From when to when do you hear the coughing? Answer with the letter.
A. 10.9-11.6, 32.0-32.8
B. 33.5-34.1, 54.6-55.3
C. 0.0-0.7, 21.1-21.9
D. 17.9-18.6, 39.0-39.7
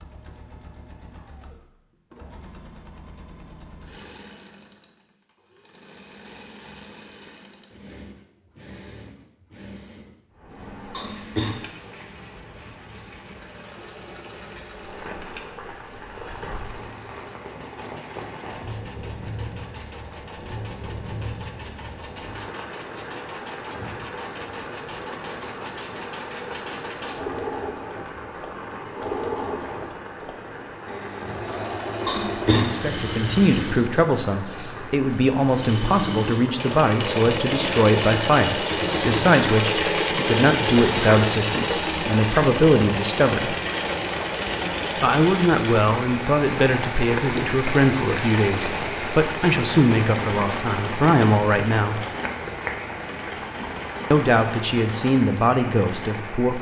A.